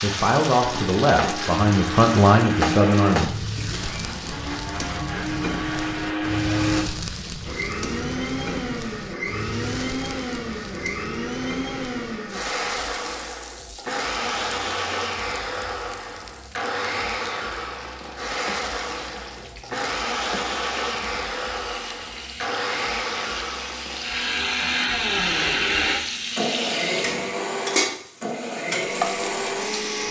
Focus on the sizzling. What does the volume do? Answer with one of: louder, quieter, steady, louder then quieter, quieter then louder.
quieter then louder.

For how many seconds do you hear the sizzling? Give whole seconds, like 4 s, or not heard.
30 s.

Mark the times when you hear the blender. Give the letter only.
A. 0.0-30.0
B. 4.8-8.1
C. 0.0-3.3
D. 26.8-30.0
A.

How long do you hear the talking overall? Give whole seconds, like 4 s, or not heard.
3 s.